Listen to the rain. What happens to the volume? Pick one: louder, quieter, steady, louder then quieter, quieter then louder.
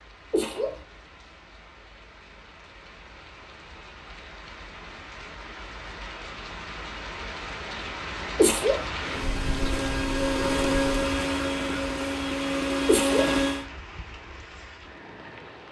louder then quieter.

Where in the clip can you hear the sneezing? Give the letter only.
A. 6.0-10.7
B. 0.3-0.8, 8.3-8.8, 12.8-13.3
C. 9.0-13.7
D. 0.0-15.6
B.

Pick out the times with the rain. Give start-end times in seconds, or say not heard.
0.0-15.6.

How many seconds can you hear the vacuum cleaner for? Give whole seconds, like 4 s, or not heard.
5 s.